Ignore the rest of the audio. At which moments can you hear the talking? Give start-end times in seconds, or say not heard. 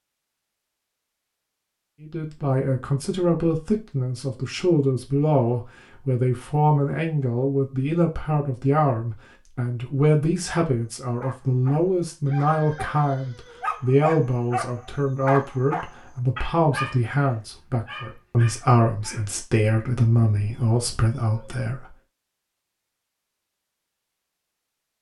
2.0-21.9.